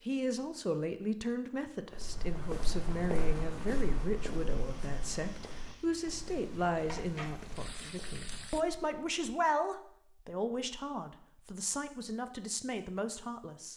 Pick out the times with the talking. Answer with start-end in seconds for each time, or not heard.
0.1-13.7.